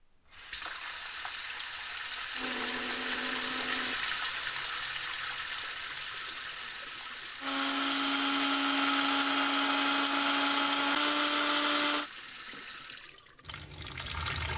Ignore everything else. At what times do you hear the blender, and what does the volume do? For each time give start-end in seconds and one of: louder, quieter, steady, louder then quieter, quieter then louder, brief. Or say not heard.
2.4-4.2 brief
7.4-12.1 steady.